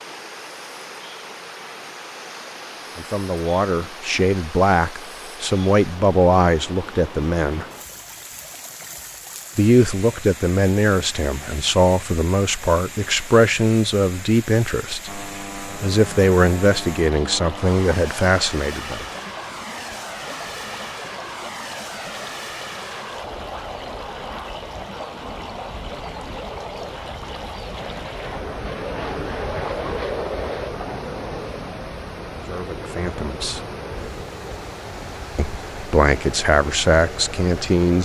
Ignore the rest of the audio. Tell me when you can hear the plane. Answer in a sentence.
The plane can be heard from 15.1 to 38.0 s.